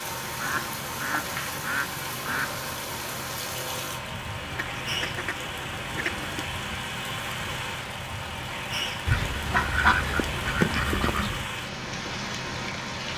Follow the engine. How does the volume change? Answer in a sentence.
The volume of the engine stays about the same.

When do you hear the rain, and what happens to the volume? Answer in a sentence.
The rain can be heard from 0.0 to 13.1 s, at a steady volume.